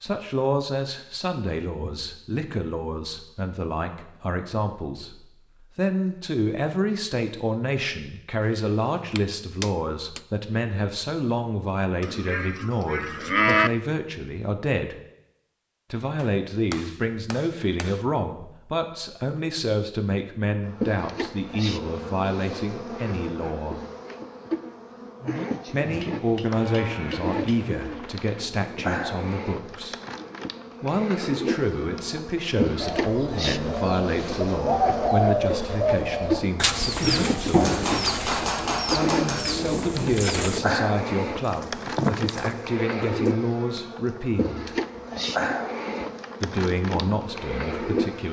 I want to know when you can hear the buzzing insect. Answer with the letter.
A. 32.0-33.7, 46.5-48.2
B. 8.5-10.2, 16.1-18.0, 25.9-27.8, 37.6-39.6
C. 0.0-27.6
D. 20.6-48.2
D.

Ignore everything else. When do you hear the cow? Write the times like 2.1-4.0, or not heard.
12.0-13.7, 26.4-28.2.